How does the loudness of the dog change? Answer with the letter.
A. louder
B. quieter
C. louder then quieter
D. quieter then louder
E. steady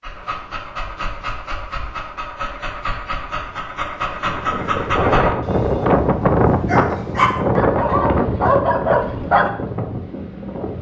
A.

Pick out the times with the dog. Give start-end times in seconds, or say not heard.
0.0-9.5.